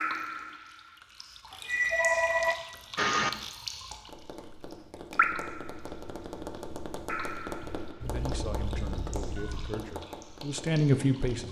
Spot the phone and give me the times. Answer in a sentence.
The phone can be heard from 1.5 to 3.3 s and from 8.0 to 9.8 s.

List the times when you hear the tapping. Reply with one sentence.
The tapping can be heard from 4.0 to 11.4 s.